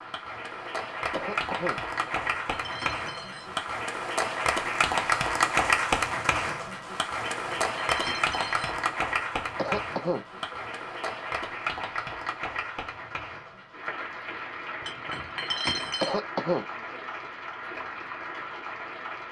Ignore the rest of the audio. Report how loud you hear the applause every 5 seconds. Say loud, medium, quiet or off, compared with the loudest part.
loud, loud, medium, medium.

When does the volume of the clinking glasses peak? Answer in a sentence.
The volume of the clinking glasses peaks at 16 seconds.